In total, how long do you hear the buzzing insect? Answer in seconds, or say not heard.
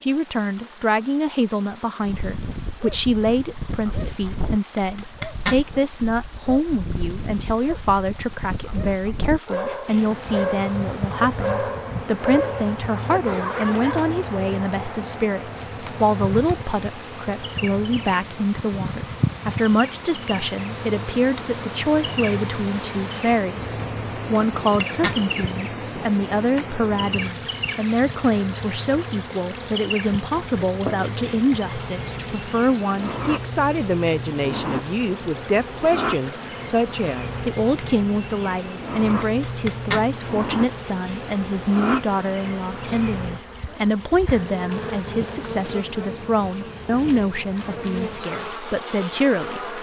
40 s.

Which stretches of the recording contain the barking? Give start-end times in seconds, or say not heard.
2.0-14.2.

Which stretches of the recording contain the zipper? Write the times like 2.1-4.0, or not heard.
4.8-5.6, 24.4-25.2, 39.2-40.0.